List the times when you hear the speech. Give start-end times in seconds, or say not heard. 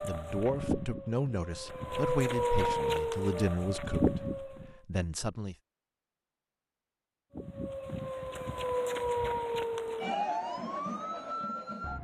0.0-5.5.